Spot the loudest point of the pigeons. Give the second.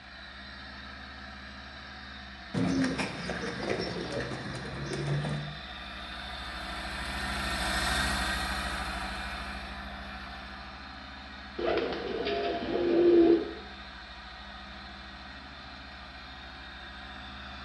13 s.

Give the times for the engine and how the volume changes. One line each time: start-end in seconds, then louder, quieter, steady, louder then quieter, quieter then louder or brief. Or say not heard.
0.0-17.6 louder then quieter.